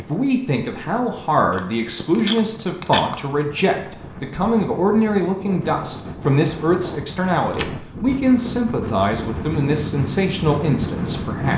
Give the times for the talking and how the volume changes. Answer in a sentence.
You can hear the talking from 0.0 to 11.5 s, at a steady volume.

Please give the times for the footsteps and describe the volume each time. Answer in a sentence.
The footsteps can't be heard in this clip.